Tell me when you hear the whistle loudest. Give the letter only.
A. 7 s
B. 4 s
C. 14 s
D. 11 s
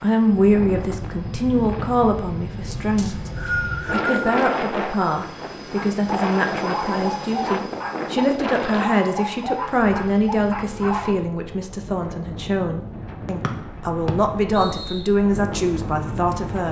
B.